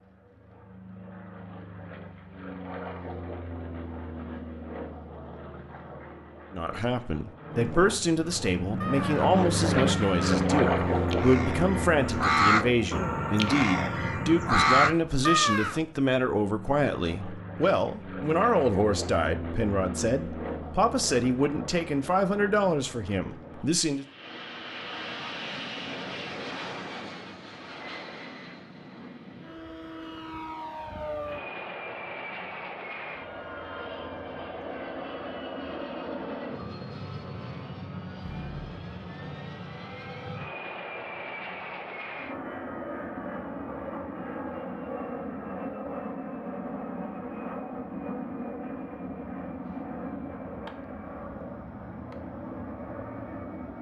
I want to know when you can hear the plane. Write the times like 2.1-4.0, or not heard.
0.0-53.7.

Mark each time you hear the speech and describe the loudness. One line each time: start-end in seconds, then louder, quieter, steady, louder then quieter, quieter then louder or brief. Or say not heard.
6.5-24.1 steady.